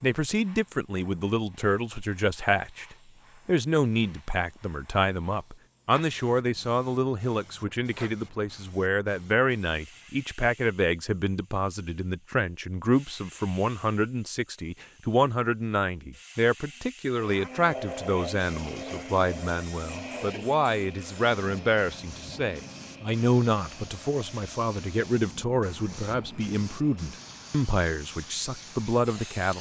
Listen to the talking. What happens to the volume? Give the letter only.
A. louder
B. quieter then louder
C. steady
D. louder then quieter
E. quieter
C.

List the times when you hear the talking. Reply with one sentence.
The talking can be heard from 0.0 to 29.5 s.